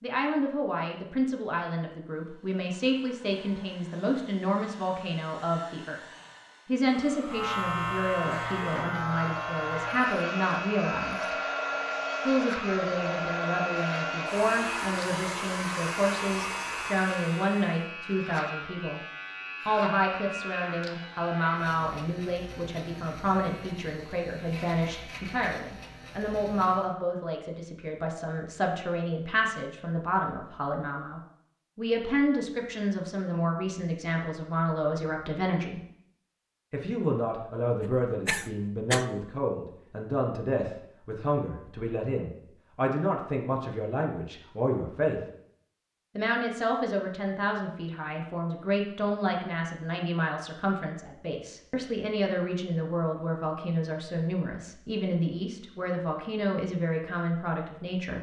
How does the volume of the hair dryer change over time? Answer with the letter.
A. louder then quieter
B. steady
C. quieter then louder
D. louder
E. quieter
D.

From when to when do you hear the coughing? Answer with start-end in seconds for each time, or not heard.
37.8-39.0.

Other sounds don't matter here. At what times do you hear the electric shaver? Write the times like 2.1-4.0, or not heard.
7.2-26.9.